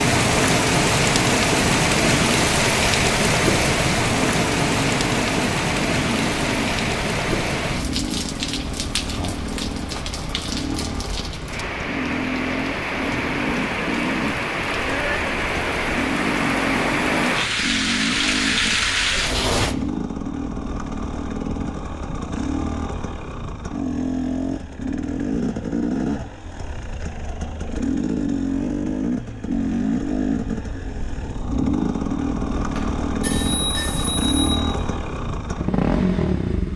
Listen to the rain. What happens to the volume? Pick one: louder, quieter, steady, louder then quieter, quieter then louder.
quieter then louder.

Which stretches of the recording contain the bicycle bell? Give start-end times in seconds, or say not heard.
32.5-34.5.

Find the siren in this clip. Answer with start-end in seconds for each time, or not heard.
not heard.